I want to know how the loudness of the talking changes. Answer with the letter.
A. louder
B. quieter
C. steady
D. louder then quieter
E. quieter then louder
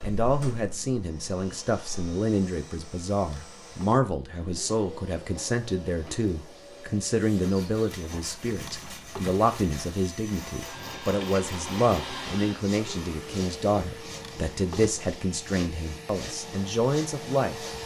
C.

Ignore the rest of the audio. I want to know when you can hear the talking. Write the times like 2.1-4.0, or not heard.
0.0-17.6.